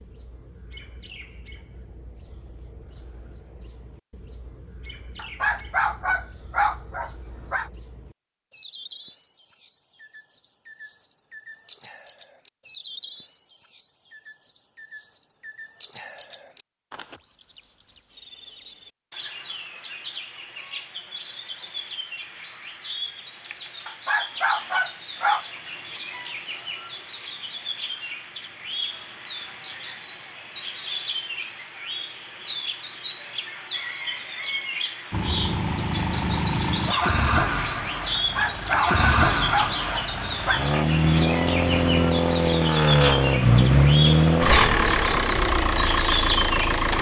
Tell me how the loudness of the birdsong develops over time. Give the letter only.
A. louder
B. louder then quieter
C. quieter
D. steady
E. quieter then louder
A.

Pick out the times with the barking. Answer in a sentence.
The barking can be heard from 5.2 to 7.7 s, from 23.9 to 25.4 s and from 38.1 to 40.6 s.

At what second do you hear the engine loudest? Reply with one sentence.
The volume of the engine peaks at 44 seconds.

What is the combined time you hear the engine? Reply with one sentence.
The engine can be heard for 12 seconds in total.